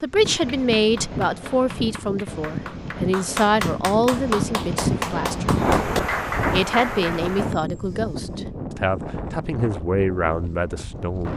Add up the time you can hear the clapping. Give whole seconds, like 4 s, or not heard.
7 s.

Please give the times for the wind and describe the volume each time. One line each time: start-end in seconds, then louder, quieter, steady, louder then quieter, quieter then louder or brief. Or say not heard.
0.0-11.3 louder then quieter.